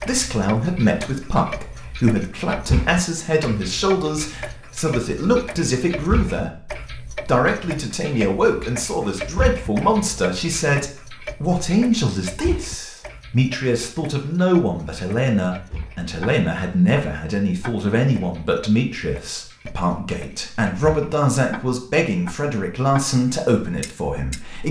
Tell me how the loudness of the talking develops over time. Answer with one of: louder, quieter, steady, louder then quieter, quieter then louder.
steady.